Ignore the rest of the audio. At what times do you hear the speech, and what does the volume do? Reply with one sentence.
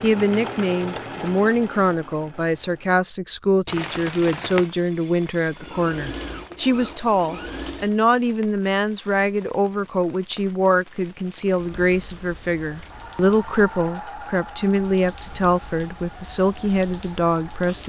You can hear the speech from 0.0 to 17.8 s, at a steady volume.